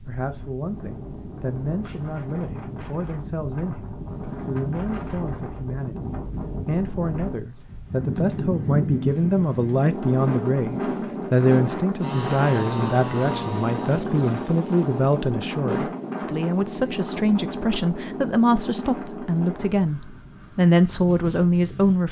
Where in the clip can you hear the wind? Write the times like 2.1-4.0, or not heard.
0.0-22.0.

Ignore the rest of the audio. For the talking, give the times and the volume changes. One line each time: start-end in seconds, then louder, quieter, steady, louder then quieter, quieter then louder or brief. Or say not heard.
0.0-22.0 louder.